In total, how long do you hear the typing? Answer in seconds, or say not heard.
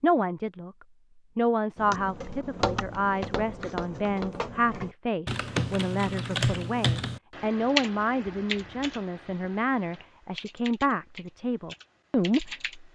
11 s.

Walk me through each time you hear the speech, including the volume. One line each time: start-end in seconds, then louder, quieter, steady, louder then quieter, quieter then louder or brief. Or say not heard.
0.0-0.7 brief
1.4-12.9 steady.